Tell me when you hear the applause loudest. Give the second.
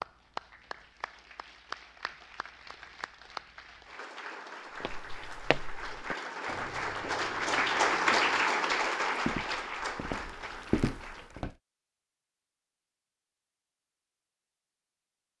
8 s.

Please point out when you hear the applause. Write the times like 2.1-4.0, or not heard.
0.0-11.4.